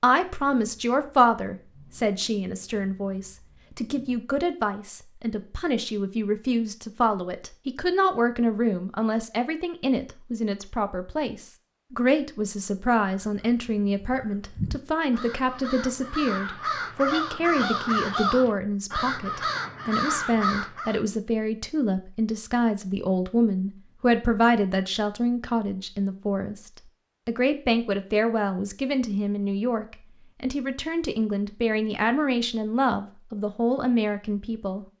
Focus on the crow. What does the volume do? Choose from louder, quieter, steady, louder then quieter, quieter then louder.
louder.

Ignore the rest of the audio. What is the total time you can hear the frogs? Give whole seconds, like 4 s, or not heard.
not heard.